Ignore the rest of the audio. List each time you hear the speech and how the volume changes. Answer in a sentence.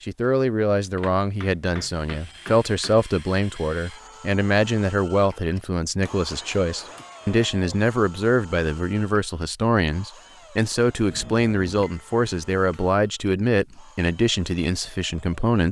You can hear the speech from 0.0 to 15.6 s, at a steady volume.